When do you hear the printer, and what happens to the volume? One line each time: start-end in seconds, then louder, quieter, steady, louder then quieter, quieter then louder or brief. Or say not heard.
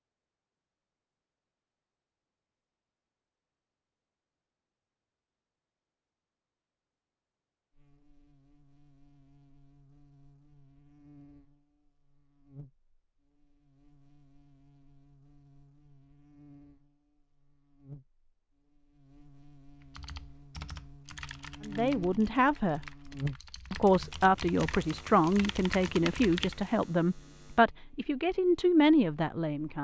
not heard.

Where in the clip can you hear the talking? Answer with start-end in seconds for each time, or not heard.
21.6-22.8, 23.7-29.8.